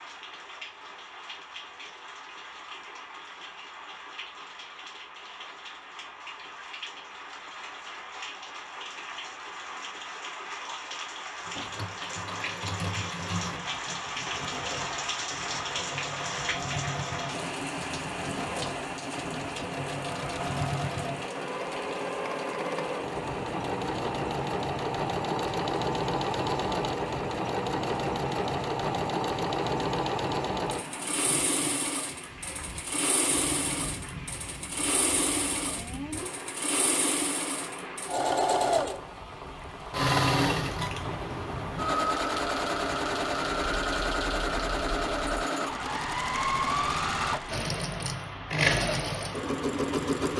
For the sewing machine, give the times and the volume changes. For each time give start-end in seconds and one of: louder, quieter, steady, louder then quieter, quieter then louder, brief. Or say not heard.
11.4-50.3 louder.